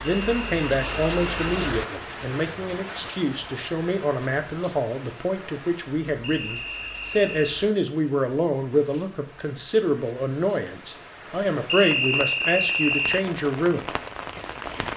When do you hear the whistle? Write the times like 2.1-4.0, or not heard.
0.0-1.6, 6.2-7.5, 11.7-13.2.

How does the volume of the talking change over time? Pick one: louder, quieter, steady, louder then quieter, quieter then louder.
steady.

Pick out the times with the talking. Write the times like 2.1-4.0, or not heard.
0.0-13.8.